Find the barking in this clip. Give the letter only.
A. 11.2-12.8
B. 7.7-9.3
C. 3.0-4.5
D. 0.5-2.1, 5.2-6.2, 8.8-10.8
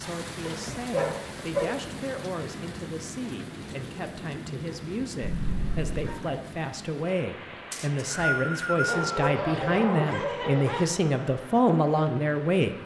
D.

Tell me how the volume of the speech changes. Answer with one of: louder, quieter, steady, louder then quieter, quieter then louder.
louder.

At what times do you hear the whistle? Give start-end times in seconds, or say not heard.
7.7-9.3.